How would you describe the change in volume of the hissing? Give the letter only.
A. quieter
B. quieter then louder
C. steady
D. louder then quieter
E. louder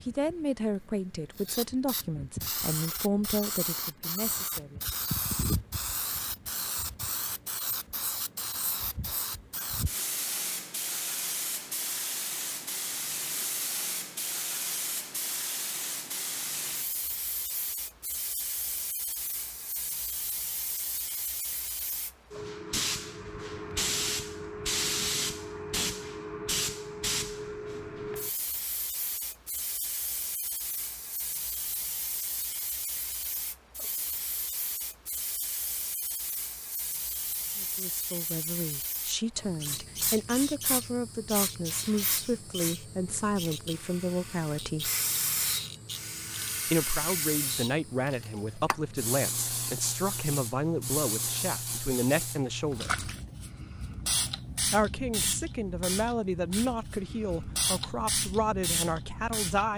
C.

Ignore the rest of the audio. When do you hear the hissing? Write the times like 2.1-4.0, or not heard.
0.0-59.7.